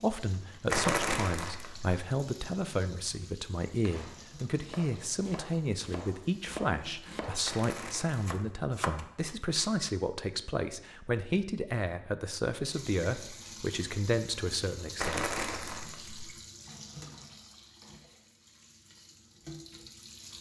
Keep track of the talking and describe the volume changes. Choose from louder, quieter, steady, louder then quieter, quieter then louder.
steady.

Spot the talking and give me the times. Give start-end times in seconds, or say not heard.
0.0-15.2.